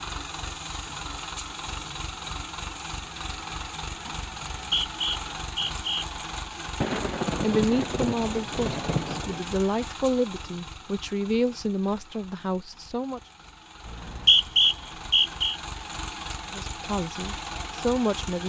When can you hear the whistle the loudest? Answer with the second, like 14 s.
14 s.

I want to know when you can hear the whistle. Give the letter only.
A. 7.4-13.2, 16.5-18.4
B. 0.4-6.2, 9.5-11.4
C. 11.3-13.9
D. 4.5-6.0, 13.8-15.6
D.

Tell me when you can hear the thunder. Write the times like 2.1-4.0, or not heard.
6.8-9.4.